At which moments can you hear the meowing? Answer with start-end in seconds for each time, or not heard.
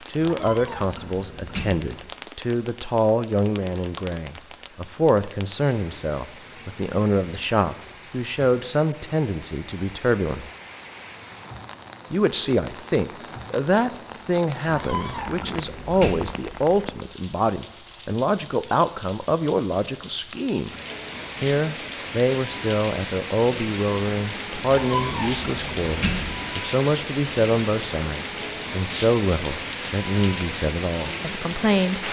0.2-1.9, 14.7-16.4, 24.6-26.5.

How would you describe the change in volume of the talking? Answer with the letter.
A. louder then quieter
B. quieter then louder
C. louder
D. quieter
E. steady
E.